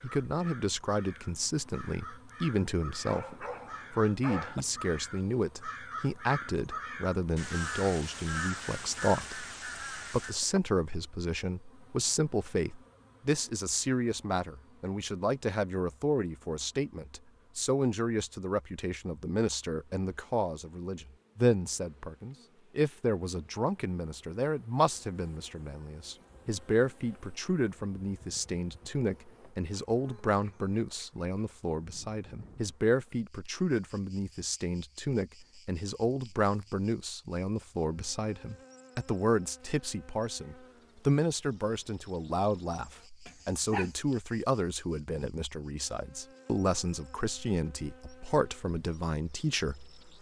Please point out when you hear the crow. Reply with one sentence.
You can hear the crow from 0.0 to 10.3 s.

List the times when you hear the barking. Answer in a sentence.
The barking can be heard from 3.0 to 4.7 s and from 43.2 to 44.0 s.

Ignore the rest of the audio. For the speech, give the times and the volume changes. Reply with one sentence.
You can hear the speech from 0.0 to 50.1 s, at a steady volume.